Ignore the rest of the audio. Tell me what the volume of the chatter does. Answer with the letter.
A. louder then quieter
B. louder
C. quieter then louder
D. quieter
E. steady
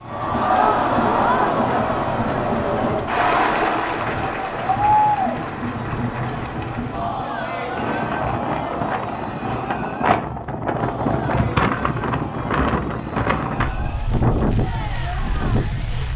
D.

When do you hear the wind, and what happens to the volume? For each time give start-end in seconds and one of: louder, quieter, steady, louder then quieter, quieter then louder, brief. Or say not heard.
0.0-16.1 louder.